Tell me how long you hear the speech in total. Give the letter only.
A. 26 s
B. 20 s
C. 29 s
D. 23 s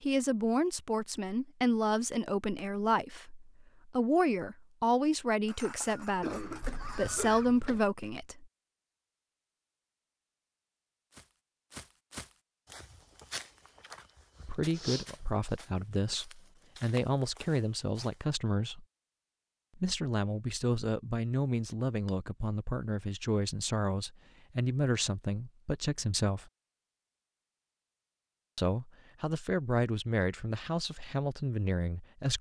D.